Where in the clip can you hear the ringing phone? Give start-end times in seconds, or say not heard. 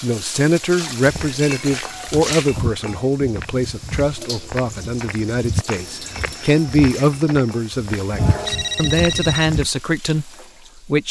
8.2-9.4.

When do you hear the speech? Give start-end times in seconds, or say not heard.
0.0-11.0.